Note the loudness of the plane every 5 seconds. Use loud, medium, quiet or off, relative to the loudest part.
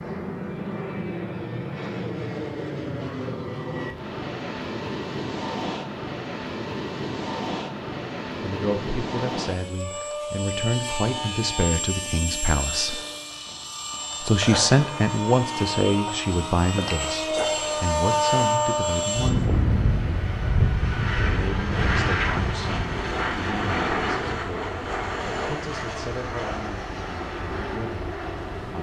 medium, medium, medium, loud, loud, medium.